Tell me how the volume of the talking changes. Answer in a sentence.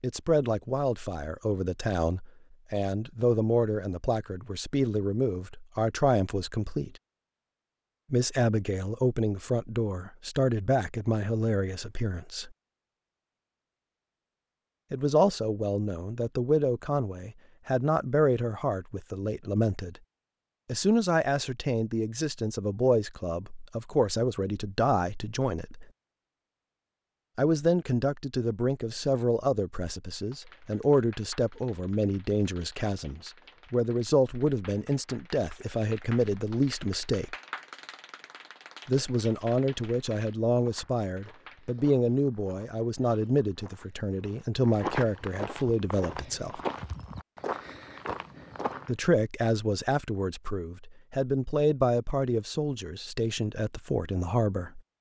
The loudness of the talking stays about the same.